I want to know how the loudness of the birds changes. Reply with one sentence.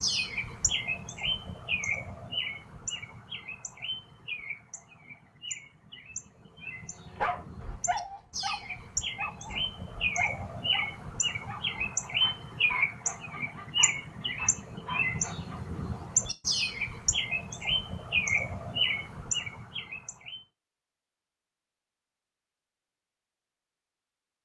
The volume of the birds goes down, then up.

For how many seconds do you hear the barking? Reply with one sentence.
The barking can be heard for 9 seconds in total.